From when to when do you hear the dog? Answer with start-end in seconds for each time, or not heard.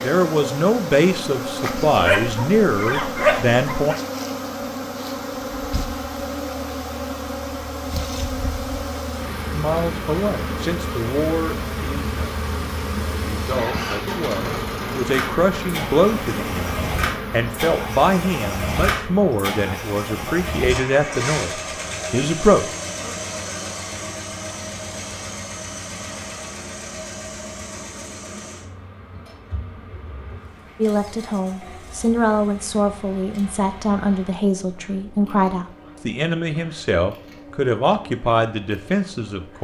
1.6-4.0.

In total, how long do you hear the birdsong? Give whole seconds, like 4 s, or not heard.
not heard.